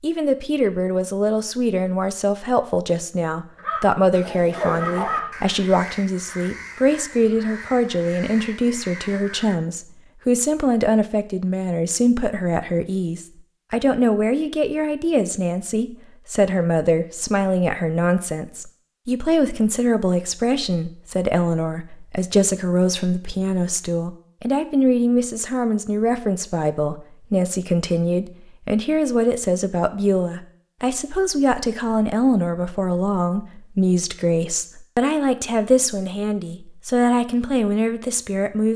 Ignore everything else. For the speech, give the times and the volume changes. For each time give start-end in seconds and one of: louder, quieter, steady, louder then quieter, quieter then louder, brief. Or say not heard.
0.0-38.7 steady.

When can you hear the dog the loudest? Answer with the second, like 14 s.
5 s.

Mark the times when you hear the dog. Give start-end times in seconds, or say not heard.
3.5-5.3.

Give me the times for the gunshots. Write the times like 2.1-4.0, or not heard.
not heard.